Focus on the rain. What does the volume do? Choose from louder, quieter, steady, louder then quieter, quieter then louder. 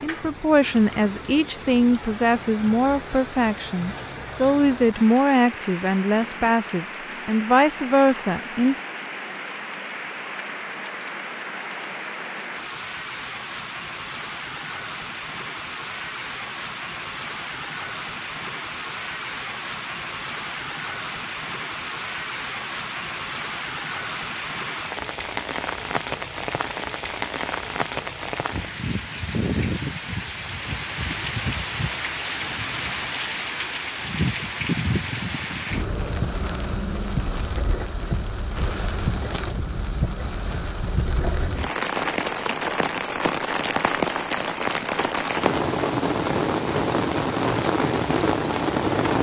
louder.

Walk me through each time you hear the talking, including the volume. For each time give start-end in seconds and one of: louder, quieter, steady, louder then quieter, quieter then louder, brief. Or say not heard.
0.0-8.8 steady.